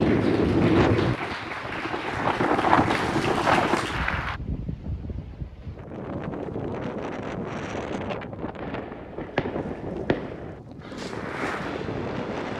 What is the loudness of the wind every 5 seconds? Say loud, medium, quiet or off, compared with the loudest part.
loud, medium, medium.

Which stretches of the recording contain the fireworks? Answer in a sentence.
You can hear the fireworks from 8.6 to 12.5 s.